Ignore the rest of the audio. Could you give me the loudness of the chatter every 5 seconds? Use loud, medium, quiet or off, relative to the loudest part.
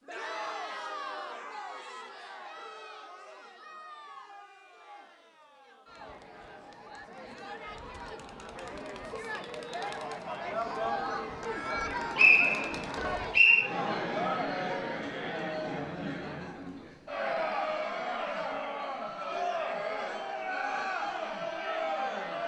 medium, medium, loud, loud, loud.